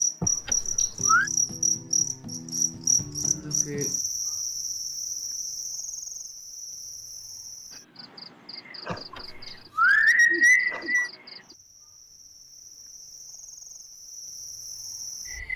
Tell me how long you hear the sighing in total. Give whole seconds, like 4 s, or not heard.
3 s.